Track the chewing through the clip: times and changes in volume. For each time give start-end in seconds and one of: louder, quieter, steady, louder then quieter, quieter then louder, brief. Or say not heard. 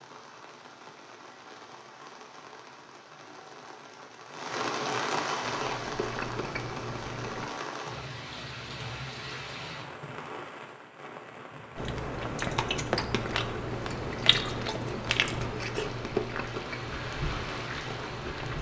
5.4-7.5 brief
11.8-18.5 quieter.